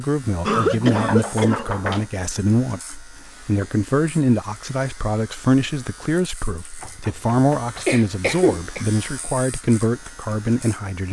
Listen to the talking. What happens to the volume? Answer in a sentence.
The loudness of the talking stays about the same.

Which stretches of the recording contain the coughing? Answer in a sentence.
The coughing can be heard from 0.4 to 2.0 s and from 7.8 to 8.8 s.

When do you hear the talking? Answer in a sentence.
The talking can be heard from 0.0 to 11.0 s.